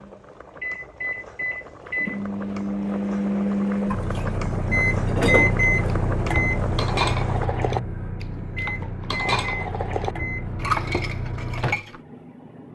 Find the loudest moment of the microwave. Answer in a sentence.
The loudest moment of the microwave is at 5 seconds.